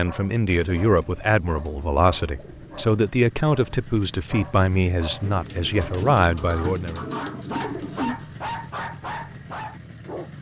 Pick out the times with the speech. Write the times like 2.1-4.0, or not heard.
0.0-7.0.